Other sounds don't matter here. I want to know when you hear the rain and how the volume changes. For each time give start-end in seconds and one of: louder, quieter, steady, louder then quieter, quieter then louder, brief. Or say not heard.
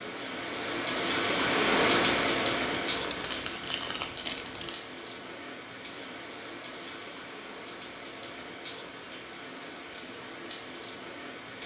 0.0-11.6 quieter.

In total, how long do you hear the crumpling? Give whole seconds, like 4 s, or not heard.
2 s.